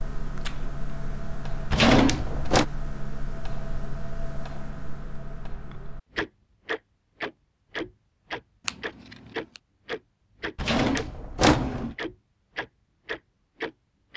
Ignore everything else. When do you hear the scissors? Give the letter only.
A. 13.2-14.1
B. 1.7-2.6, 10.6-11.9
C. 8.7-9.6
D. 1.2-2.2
C.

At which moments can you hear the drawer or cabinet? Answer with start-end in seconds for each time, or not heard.
1.7-2.6, 10.6-11.9.